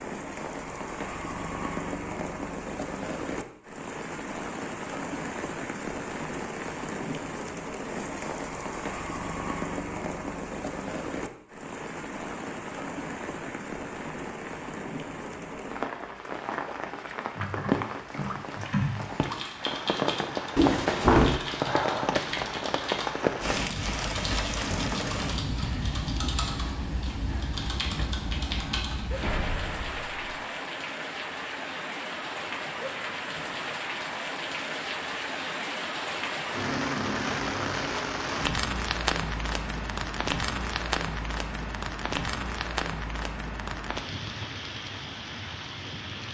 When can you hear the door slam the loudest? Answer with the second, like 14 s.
21 s.